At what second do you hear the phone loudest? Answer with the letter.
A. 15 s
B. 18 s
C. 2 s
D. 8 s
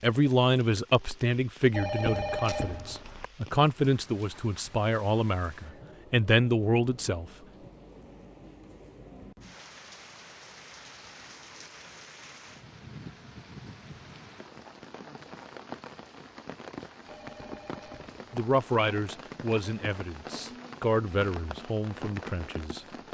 C.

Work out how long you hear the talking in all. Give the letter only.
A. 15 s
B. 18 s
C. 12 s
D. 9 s
C.